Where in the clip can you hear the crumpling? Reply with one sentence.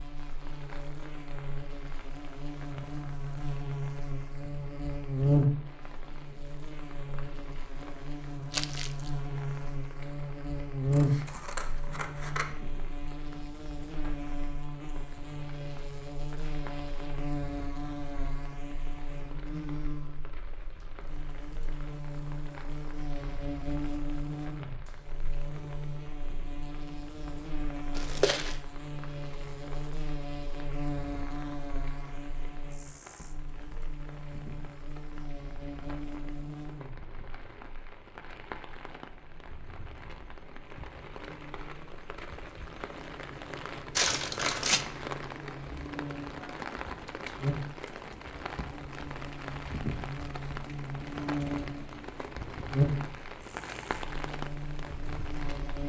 The crumpling can be heard from 8.5 to 9.1 s, from 27.9 to 28.6 s and from 44.0 to 44.9 s.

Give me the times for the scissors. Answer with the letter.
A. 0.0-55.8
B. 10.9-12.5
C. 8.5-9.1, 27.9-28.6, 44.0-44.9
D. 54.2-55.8
B.